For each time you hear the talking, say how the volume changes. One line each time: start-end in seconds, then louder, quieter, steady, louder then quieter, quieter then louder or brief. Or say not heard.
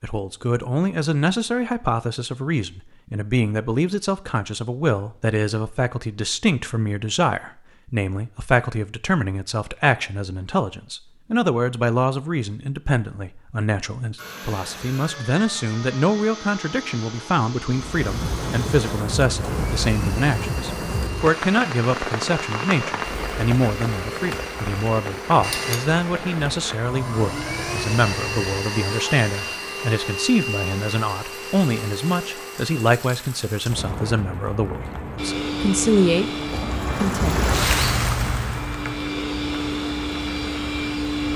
0.0-36.3 steady
37.0-37.4 brief.